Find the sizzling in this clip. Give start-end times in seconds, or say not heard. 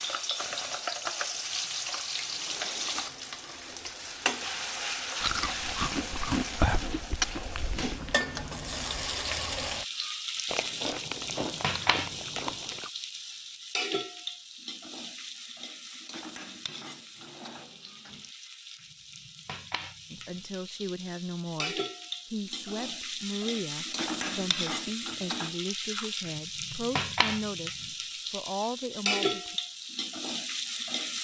0.0-31.1.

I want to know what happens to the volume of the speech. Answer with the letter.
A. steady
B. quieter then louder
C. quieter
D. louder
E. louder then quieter
A.